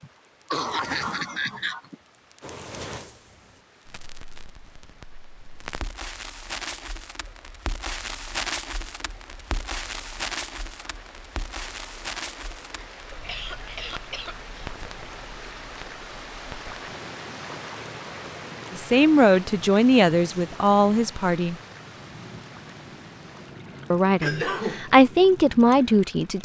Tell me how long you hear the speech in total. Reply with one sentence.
The speech can be heard for 5 seconds in total.